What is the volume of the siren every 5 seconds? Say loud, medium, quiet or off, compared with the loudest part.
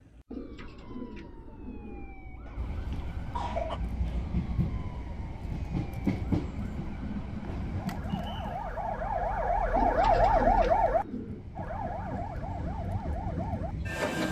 quiet, medium, loud.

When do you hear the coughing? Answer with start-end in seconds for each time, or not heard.
2.5-3.8.